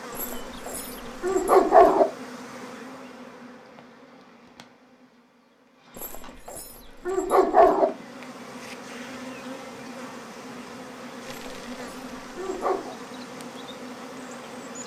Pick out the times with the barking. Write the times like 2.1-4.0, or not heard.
0.1-2.0, 6.0-7.9, 11.2-12.9.